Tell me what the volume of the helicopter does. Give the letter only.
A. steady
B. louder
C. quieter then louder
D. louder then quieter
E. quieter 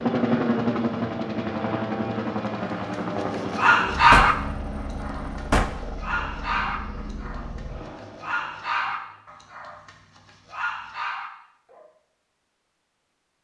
E.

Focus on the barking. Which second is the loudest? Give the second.
4 s.